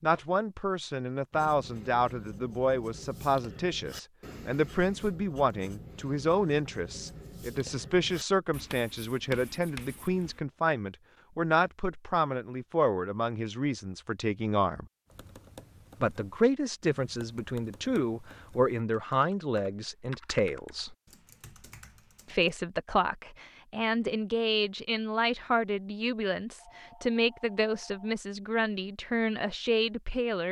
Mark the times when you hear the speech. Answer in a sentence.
You can hear the speech from 0.0 to 14.8 s, from 16.0 to 20.9 s and from 22.2 to 30.4 s.